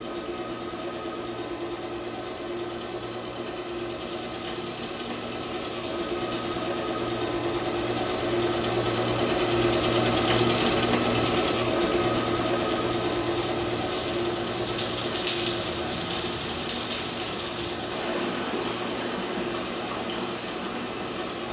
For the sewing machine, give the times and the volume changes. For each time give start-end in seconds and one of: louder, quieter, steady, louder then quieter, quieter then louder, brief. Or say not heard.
0.0-21.4 louder then quieter.